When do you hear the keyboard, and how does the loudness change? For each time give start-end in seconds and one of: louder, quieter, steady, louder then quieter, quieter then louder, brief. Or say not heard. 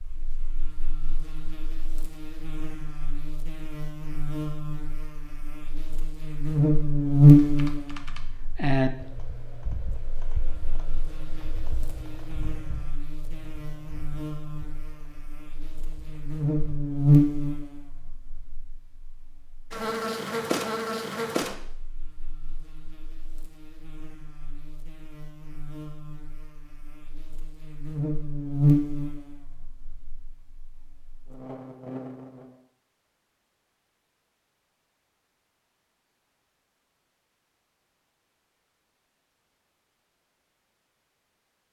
7.3-16.8 quieter.